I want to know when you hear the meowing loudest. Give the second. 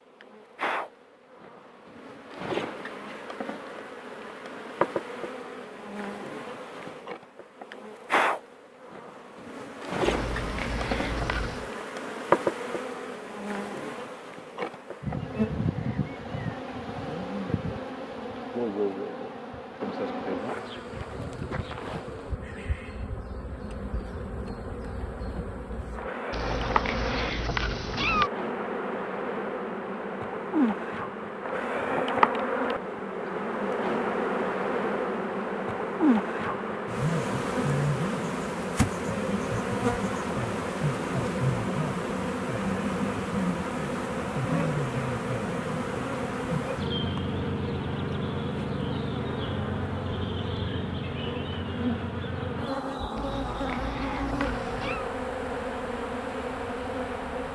28 s.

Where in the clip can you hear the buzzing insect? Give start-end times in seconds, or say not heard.
0.0-57.4.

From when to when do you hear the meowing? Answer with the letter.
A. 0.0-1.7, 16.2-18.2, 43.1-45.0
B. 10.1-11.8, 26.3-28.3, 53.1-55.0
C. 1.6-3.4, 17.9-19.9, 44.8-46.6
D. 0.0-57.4
B.